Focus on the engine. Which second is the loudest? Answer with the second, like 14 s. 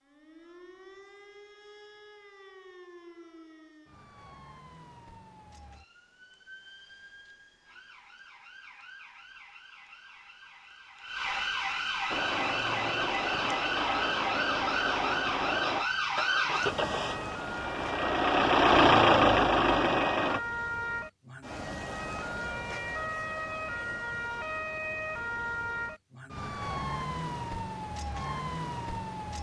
19 s.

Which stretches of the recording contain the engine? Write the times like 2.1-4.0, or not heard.
12.1-20.4.